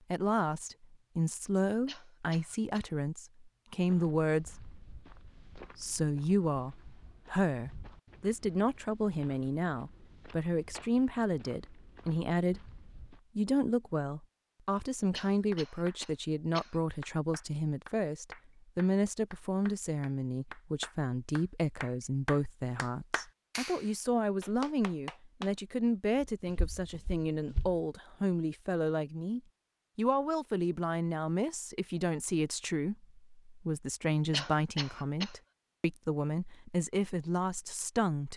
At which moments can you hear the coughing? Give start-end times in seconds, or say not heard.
1.9-2.9, 15.1-16.8, 34.3-35.4.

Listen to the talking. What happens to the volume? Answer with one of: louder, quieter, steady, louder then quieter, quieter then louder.
steady.